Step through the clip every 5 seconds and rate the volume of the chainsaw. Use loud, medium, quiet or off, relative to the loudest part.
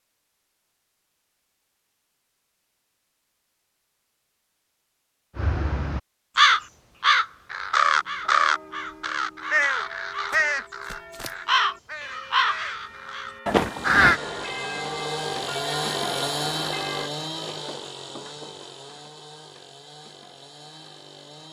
off, off, medium, loud, quiet.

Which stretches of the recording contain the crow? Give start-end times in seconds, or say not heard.
5.3-14.2.